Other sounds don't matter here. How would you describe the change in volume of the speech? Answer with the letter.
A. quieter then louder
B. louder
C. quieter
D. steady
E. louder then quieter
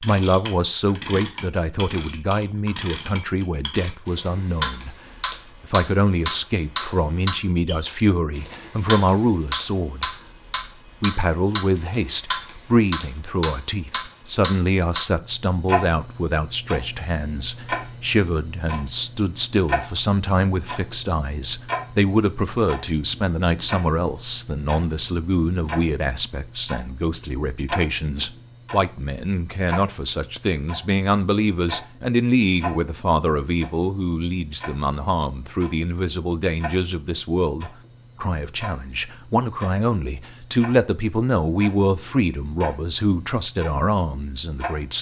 D.